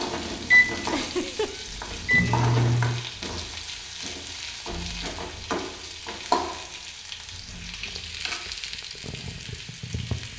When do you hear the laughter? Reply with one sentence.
You can hear the laughter from 0.9 to 1.6 s.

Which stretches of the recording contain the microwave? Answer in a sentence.
You can hear the microwave from 0.0 to 3.0 s.